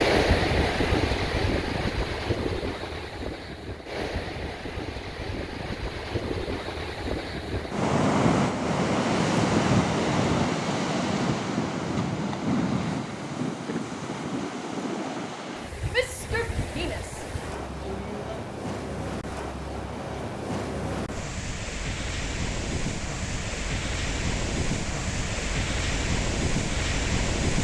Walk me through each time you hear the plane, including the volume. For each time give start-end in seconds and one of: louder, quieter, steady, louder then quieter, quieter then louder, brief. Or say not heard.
not heard.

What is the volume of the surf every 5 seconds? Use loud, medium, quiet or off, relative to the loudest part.
loud, loud, loud, medium, medium, loud.